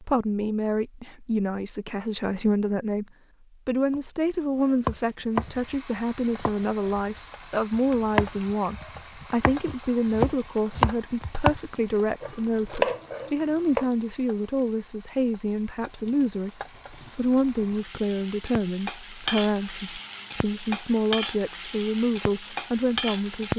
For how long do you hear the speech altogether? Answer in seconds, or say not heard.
23 s.